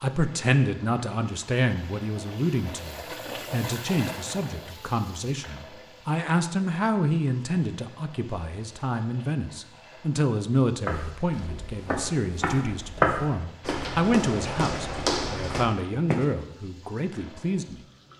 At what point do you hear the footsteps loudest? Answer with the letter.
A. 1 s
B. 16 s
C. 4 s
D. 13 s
D.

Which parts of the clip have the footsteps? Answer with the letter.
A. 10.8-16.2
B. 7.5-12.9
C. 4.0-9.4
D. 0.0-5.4
A.